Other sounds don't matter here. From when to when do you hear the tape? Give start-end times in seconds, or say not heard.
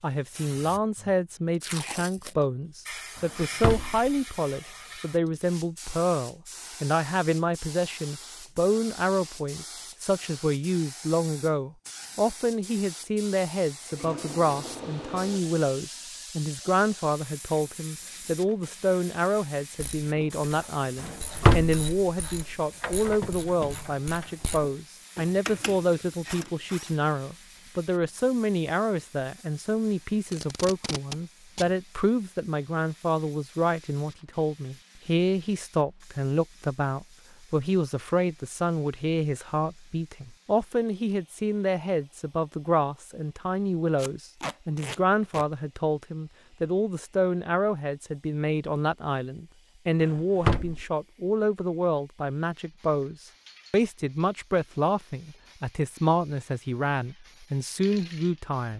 1.6-2.4, 30.2-31.8, 44.0-45.5.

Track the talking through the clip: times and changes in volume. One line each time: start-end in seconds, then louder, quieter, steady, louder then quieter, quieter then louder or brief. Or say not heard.
0.0-58.7 steady.